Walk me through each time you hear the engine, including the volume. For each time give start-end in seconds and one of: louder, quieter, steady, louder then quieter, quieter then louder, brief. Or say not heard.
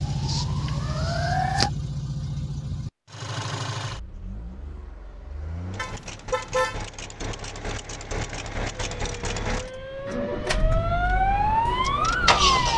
0.0-12.7 quieter then louder.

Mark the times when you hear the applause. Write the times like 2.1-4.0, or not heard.
not heard.